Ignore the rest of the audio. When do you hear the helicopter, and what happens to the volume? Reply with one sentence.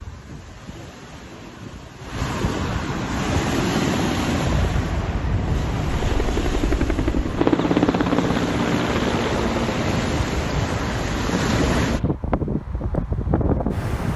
You can hear the helicopter from 3.0 to 12.2 s, getting louder then quieter.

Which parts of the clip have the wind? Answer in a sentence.
You can hear the wind from 0.0 to 14.1 s.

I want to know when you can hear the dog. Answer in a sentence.
You can't hear the dog here.